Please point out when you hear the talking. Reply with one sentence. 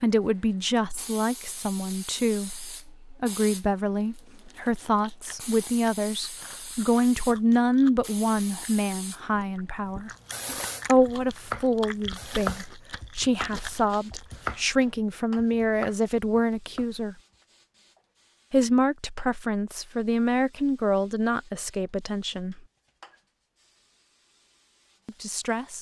The talking can be heard from 0.0 to 10.1 s, from 10.8 to 17.1 s, from 18.5 to 22.6 s and from 25.1 to 25.7 s.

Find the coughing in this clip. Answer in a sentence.
You can't hear the coughing here.